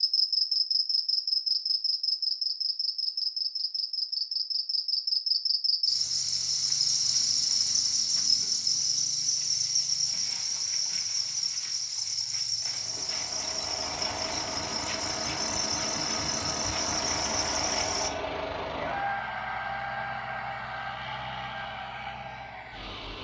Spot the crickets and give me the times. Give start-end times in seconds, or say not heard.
0.0-18.1.